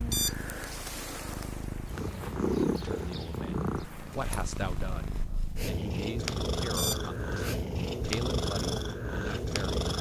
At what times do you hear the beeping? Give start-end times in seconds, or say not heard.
0.1-0.8, 6.8-7.5.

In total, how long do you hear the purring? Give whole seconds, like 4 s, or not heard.
10 s.